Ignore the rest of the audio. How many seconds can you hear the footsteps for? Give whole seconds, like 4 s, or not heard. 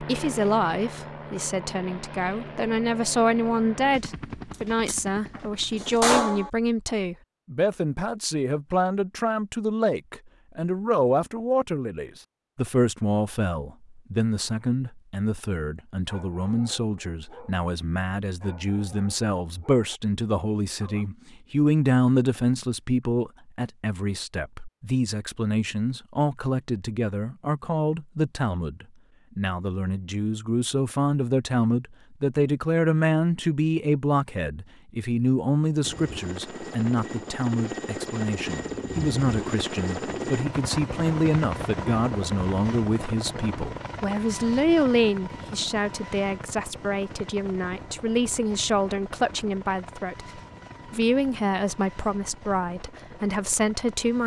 not heard.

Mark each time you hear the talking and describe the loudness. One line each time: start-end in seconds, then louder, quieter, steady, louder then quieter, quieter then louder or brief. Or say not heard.
0.0-54.2 steady.